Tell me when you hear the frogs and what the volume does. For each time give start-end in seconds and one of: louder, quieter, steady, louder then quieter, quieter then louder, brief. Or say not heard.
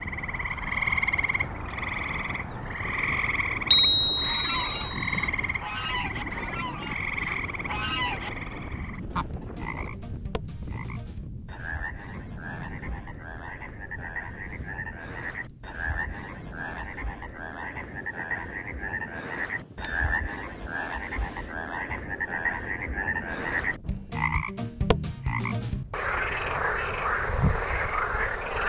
0.0-28.6 quieter then louder.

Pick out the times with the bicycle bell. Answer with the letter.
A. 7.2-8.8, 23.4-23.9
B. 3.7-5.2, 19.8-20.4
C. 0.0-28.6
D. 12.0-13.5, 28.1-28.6
B.